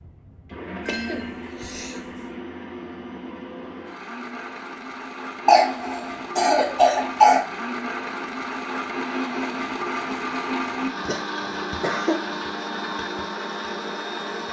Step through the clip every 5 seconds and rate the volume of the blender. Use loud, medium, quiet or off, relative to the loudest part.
medium, loud, loud.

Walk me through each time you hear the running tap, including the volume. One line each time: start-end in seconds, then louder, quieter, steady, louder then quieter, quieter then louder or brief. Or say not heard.
not heard.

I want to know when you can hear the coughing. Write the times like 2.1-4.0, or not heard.
0.8-2.1, 5.5-7.5, 11.1-12.2.